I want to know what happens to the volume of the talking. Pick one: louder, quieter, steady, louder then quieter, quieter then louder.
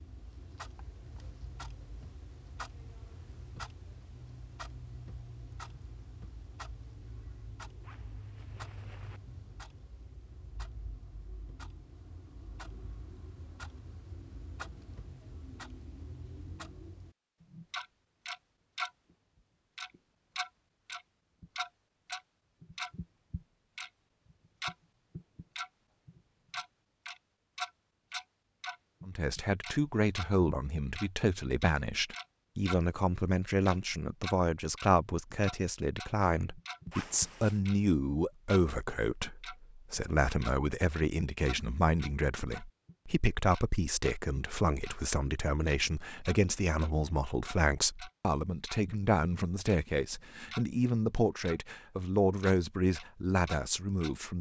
steady.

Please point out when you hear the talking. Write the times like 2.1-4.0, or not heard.
29.1-54.3.